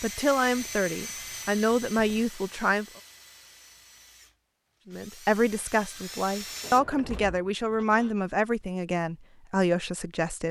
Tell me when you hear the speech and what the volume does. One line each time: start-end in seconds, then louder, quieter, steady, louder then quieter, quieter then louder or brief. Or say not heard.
0.0-2.9 brief
4.8-10.4 steady.